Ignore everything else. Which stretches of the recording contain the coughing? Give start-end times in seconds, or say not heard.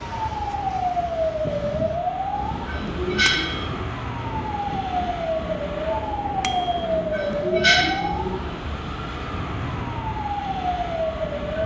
2.5-3.9, 6.9-8.6.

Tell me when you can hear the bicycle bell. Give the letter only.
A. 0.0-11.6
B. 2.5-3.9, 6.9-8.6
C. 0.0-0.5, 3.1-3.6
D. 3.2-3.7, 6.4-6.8
D.